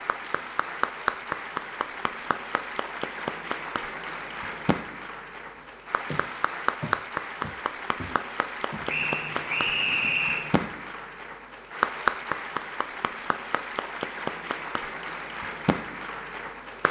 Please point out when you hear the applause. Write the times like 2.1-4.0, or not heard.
0.0-16.8.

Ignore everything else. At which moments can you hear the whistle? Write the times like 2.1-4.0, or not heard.
8.8-10.6.